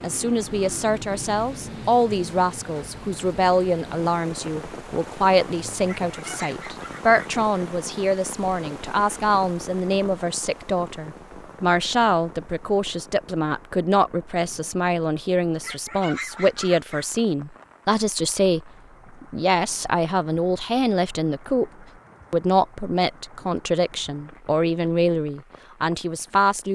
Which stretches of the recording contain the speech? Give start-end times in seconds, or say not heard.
0.0-21.7, 22.3-26.7.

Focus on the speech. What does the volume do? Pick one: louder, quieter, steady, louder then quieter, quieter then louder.
steady.